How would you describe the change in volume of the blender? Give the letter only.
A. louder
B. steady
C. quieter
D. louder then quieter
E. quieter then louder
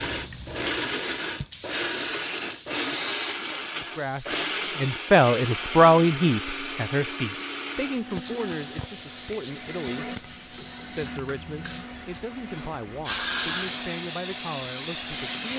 C.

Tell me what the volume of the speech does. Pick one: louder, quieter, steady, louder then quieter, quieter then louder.
quieter.